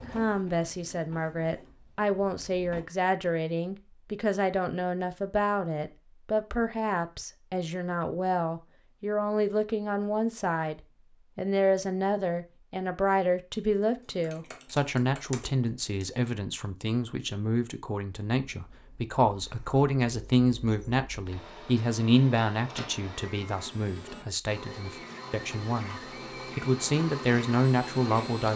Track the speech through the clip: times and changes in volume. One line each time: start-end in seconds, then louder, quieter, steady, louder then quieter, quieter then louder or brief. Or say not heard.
0.1-28.5 steady.